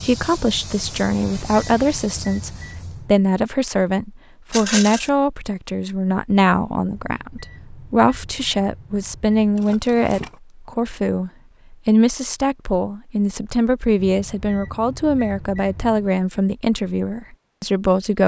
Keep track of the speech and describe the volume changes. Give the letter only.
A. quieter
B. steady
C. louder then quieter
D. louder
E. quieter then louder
B.